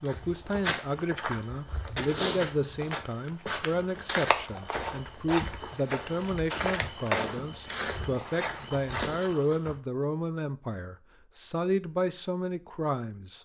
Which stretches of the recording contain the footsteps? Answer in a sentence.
The footsteps can be heard from 0.1 to 9.8 s.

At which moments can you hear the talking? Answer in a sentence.
The talking can be heard from 0.0 to 13.4 s.